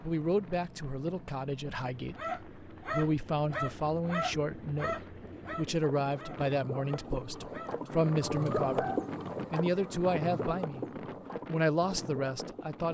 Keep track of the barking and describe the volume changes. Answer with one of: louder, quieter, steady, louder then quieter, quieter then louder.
quieter then louder.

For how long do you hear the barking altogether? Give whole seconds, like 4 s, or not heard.
7 s.